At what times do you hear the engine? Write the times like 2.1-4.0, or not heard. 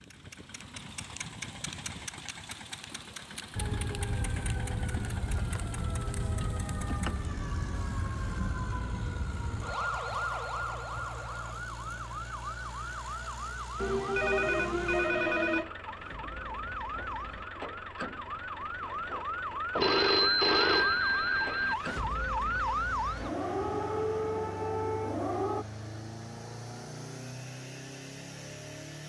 0.0-29.0.